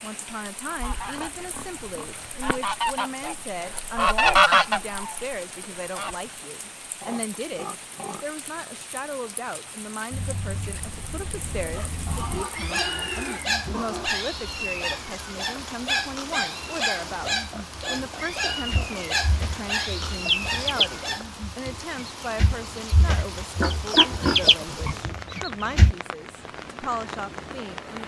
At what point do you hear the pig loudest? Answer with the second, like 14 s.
24 s.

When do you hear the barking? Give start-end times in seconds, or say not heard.
10.1-21.4.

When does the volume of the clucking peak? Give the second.
4 s.